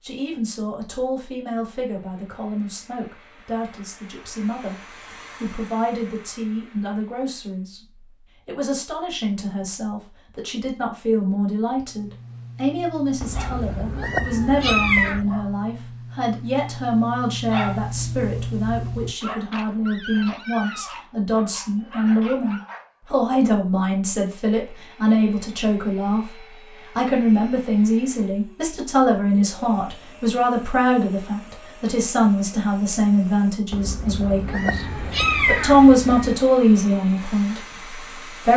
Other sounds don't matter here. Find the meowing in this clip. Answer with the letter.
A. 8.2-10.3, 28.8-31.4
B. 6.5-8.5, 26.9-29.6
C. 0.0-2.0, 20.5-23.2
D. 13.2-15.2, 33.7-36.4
D.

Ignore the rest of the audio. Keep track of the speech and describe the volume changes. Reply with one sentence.
The loudness of the speech goes up.